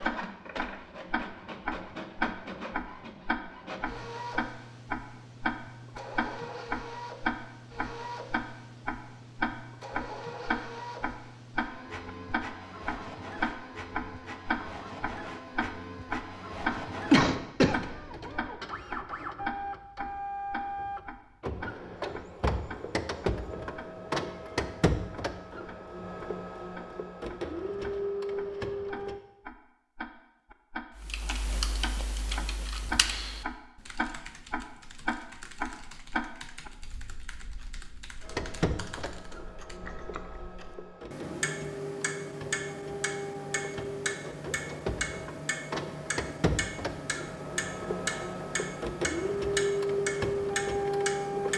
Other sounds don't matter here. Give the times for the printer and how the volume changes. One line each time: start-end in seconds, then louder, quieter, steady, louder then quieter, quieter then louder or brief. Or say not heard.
0.0-29.2 louder
38.2-51.5 louder.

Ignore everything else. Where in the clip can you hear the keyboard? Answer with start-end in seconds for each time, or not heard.
30.9-40.4.